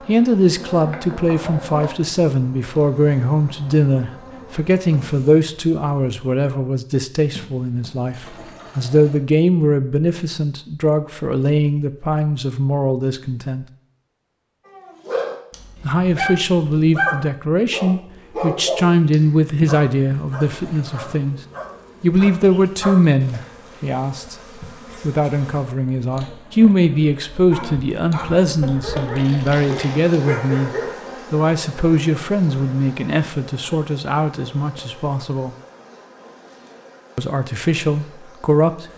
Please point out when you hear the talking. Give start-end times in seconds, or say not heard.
0.1-13.7, 15.8-21.4, 22.0-24.4, 25.0-35.5, 37.1-38.9.